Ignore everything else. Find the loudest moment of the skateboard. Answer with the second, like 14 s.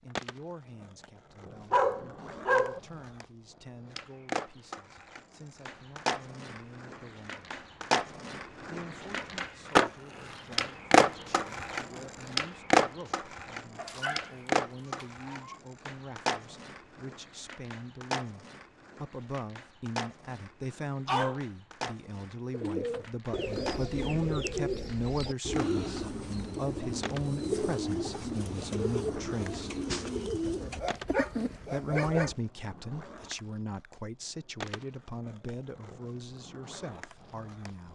11 s.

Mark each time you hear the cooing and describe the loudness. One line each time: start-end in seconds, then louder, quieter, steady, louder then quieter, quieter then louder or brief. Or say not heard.
22.5-31.9 steady.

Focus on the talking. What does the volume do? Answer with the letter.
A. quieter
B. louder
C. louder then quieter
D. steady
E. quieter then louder
B.